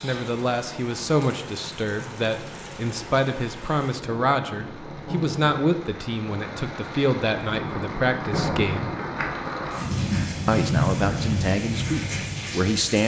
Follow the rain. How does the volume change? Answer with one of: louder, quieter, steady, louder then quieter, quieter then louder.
louder.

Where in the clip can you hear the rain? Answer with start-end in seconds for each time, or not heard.
0.0-13.0.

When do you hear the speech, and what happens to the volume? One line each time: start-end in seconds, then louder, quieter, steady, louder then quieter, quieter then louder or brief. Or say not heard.
0.0-8.9 steady
10.4-13.0 brief.